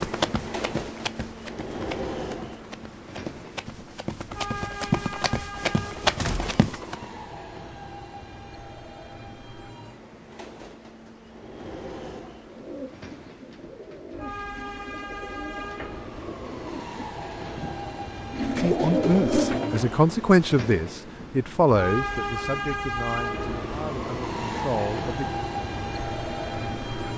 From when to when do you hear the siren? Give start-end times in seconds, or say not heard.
not heard.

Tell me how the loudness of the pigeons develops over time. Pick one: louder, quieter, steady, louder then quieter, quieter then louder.
louder.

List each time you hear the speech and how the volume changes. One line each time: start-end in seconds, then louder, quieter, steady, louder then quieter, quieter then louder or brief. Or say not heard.
18.6-25.2 quieter.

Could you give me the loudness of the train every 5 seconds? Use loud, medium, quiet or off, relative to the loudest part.
medium, medium, medium, medium, loud, loud.